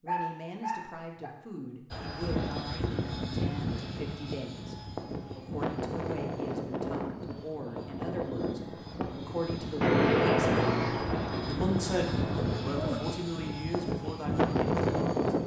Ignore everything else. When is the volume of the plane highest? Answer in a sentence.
The volume of the plane peaks at 15 seconds.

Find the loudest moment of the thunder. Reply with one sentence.
The loudest moment of the thunder is at 10 seconds.